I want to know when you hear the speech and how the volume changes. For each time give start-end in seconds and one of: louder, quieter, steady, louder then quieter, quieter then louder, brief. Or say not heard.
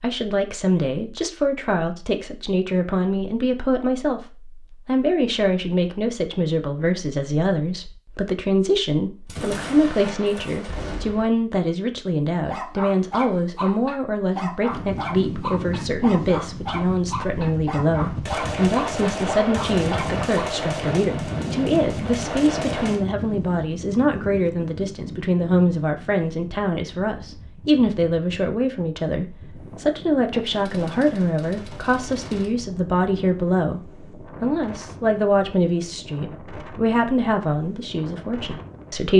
0.0-39.1 steady.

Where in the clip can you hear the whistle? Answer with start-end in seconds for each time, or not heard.
not heard.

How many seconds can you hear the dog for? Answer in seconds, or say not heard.
8 s.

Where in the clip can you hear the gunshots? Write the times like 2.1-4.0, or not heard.
9.2-11.3, 18.2-23.1, 30.4-32.5.